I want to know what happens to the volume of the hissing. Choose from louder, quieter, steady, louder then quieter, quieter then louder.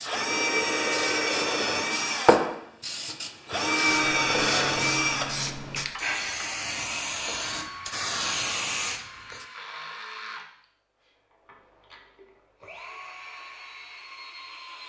louder.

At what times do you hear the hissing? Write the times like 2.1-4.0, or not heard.
0.0-9.4.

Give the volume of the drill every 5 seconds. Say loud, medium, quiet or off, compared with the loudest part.
loud, medium, quiet.